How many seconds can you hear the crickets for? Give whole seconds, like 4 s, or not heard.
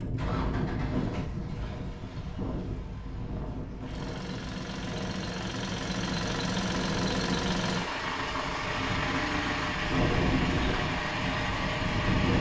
not heard.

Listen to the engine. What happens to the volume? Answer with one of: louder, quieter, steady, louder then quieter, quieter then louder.
louder.